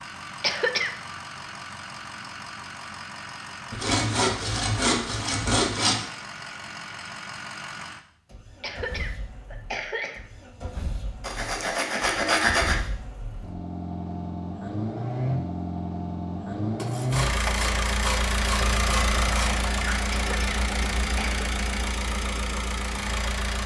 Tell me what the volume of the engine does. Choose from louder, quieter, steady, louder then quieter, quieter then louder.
louder.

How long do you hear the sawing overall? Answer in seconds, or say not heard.
7 s.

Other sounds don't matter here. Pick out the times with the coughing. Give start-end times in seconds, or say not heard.
0.4-0.9, 8.6-10.2, 20.1-21.4.